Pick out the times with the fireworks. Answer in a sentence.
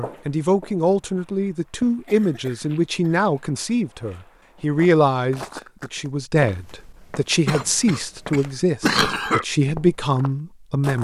The fireworks can't be heard in this clip.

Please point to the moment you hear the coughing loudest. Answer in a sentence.
The volume of the coughing peaks at 9 seconds.